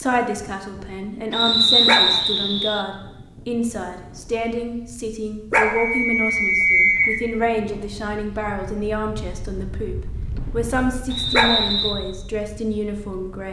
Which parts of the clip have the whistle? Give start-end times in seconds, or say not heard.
1.3-2.9, 5.5-7.2, 11.1-11.9.